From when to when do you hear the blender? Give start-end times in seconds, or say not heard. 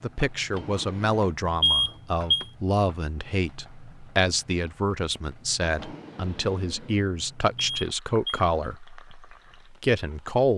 not heard.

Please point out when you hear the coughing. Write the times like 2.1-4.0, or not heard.
not heard.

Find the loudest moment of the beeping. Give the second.
2 s.